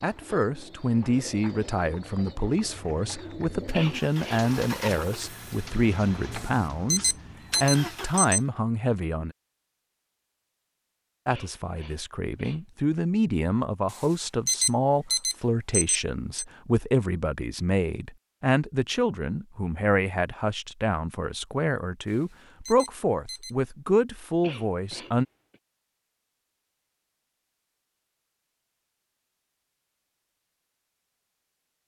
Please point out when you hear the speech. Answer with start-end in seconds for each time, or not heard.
0.0-9.3, 11.2-25.2.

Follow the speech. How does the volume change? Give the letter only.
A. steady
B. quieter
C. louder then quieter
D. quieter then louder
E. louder
A.